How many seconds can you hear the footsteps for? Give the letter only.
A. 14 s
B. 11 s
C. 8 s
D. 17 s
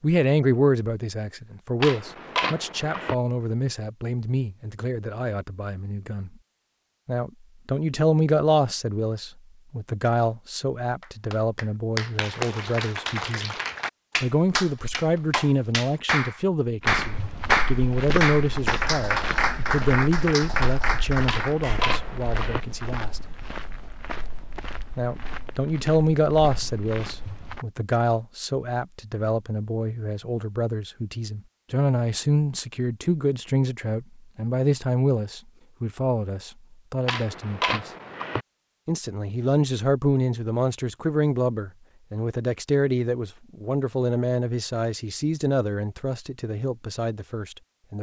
B.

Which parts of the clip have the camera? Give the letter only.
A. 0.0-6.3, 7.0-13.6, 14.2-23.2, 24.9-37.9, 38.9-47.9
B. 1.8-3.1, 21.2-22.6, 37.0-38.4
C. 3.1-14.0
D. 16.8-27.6
B.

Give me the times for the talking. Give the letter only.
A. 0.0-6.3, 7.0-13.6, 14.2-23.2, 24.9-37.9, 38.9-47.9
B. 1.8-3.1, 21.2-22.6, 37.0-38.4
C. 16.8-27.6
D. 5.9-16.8
A.